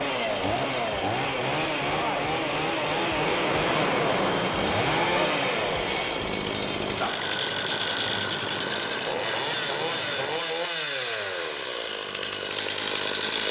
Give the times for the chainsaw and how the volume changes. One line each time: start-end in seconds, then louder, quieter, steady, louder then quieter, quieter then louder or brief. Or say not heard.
0.0-13.4 steady.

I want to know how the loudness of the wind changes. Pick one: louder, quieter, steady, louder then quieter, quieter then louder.
louder then quieter.